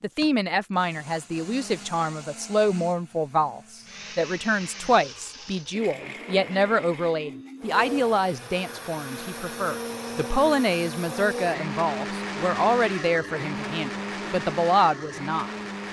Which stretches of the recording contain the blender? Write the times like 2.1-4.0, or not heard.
0.0-15.8.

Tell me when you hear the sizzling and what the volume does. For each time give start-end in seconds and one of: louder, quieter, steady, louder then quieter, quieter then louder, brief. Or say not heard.
not heard.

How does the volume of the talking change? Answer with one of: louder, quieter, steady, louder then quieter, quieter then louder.
steady.